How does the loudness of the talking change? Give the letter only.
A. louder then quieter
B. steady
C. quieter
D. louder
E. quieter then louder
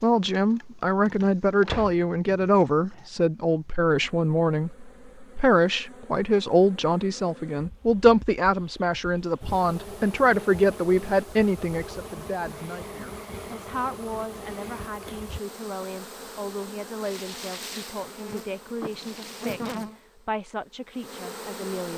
C.